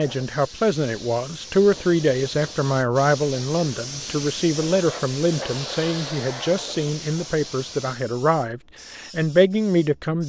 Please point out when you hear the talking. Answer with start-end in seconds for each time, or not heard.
0.0-10.2.